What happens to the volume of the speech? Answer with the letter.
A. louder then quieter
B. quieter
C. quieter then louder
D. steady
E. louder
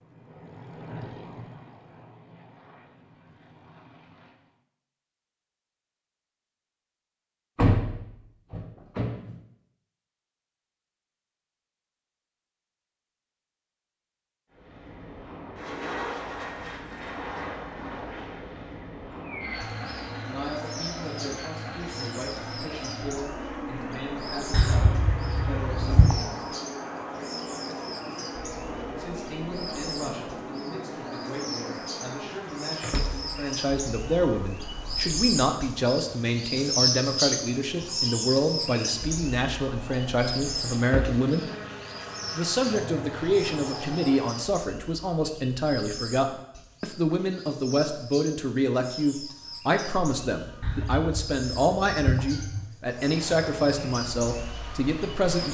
E.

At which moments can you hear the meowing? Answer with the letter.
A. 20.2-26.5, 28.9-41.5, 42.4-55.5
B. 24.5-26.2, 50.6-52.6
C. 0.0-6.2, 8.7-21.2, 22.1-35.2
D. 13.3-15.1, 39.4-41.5
B.